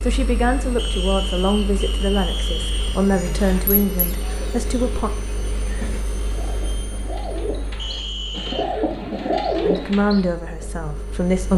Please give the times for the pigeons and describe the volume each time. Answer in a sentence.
The pigeons can be heard from 2.7 to 10.8 s, getting louder.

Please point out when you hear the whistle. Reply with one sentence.
You can hear the whistle from 0.8 to 3.0 s and from 7.8 to 8.7 s.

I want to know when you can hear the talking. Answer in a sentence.
You can hear the talking from 0.0 to 5.1 s and from 9.6 to 11.5 s.